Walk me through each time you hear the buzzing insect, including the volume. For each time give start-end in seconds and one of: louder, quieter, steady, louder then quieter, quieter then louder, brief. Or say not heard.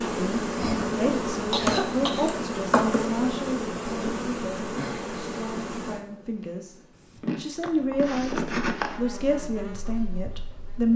0.0-10.9 quieter.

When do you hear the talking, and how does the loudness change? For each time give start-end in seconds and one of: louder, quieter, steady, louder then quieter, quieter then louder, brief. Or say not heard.
0.0-10.9 quieter then louder.